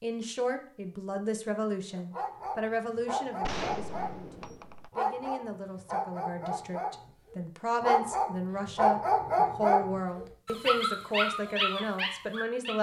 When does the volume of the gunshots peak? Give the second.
4 s.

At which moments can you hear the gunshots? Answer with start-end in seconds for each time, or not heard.
3.4-4.9.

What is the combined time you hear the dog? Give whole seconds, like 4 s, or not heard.
11 s.